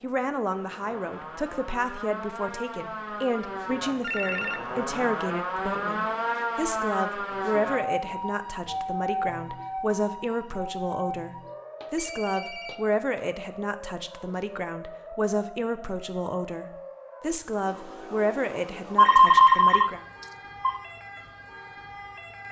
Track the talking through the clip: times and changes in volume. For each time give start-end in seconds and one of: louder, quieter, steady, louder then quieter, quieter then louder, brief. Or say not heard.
0.0-20.1 steady.